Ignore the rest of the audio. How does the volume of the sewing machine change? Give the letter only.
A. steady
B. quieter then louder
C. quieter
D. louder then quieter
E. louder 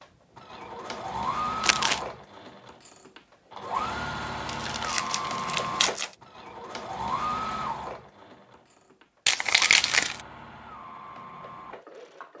C.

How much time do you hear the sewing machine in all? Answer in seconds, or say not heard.
12 s.